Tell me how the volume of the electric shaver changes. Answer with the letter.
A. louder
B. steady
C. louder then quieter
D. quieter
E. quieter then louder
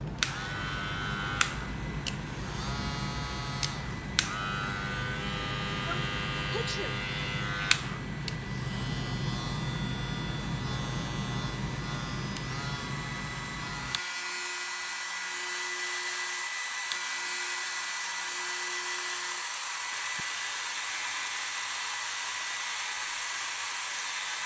D.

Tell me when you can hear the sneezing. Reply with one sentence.
The sneezing can be heard from 5.8 to 7.0 s.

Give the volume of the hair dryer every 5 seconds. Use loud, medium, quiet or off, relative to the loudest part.
medium, medium, medium, loud, loud.